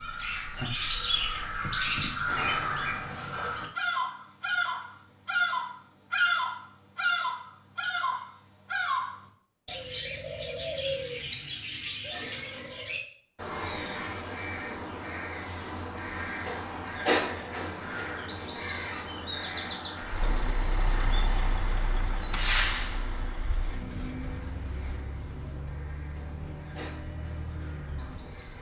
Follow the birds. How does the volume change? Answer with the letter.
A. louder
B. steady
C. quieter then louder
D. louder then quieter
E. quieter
E.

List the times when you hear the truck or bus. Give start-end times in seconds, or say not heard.
20.0-28.5.